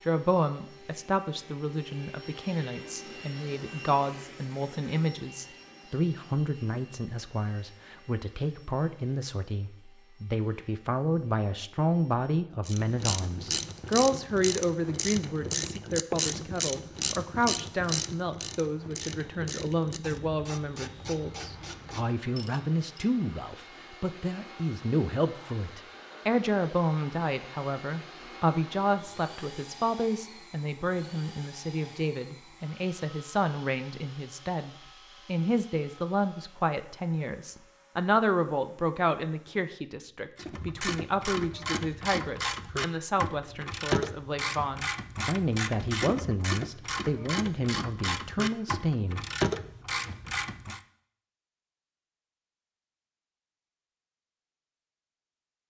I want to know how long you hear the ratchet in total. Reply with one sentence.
You can hear the ratchet for 21 seconds altogether.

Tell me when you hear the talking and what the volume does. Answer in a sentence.
The talking can be heard from 0.1 to 49.2 s, at a steady volume.